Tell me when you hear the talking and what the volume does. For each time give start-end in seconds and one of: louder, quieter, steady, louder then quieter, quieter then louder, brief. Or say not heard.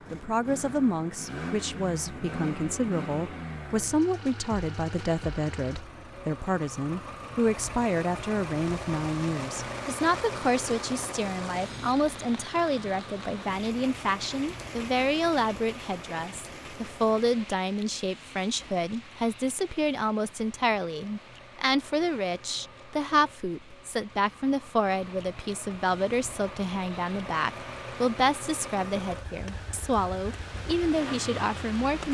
0.1-32.0 steady.